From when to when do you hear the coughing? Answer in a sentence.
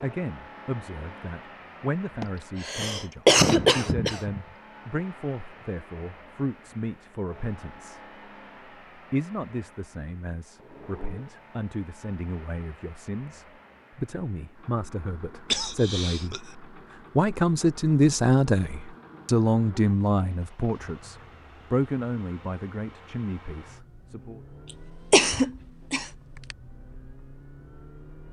You can hear the coughing from 2.2 to 4.4 s, from 15.5 to 16.6 s and from 25.1 to 26.6 s.